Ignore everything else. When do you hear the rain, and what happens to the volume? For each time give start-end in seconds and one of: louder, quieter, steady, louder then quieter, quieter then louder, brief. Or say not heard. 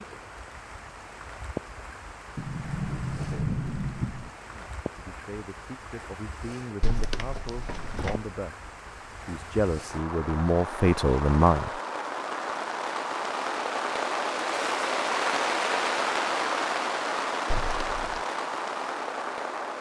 0.0-19.7 louder.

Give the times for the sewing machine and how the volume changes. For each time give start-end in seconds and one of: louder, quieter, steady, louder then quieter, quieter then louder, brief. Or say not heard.
not heard.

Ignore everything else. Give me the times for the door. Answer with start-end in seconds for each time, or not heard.
2.4-4.3, 6.8-8.2, 17.5-18.2.